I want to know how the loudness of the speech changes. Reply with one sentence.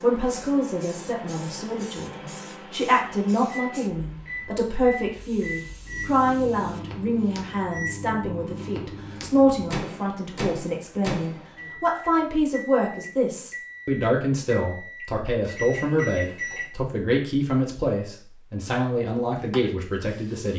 The loudness of the speech stays about the same.